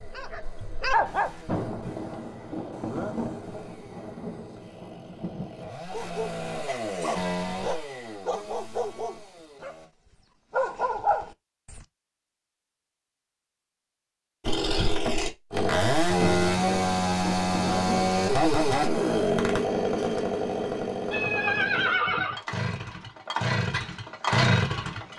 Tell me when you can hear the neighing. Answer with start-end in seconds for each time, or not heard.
21.1-22.4.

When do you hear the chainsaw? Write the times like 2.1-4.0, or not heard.
0.0-9.9, 14.4-25.1.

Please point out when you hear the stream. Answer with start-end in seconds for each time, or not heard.
not heard.